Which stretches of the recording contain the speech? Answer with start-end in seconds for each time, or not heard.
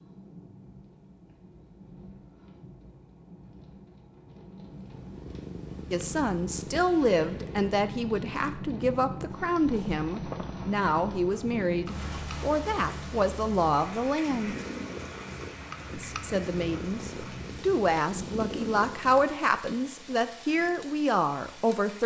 5.9-14.6, 15.9-22.0.